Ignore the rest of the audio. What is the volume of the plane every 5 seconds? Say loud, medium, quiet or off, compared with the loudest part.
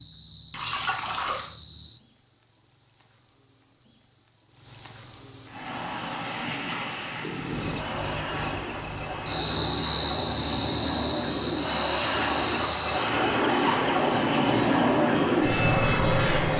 off, medium, loud, loud.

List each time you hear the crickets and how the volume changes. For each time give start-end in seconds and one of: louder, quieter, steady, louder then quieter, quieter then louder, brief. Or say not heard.
0.0-16.5 louder then quieter.